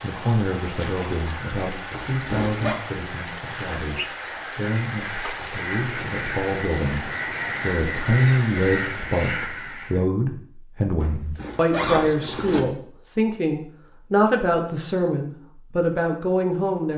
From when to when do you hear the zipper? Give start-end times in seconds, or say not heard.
1.9-2.8, 11.0-12.7.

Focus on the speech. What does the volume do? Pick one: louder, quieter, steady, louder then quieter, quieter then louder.
louder.